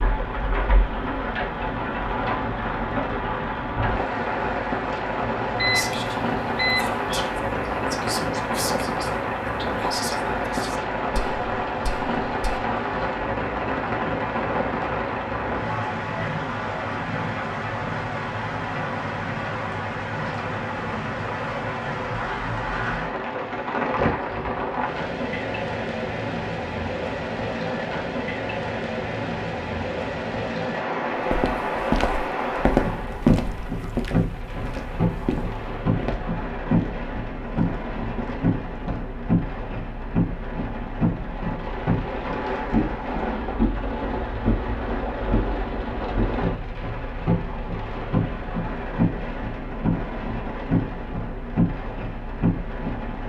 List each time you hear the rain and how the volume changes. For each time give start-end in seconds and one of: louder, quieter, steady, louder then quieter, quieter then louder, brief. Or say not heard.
0.0-53.2 steady.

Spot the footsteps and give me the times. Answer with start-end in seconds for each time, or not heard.
31.3-39.1.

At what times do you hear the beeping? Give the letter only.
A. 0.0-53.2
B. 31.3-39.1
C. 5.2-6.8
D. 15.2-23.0
C.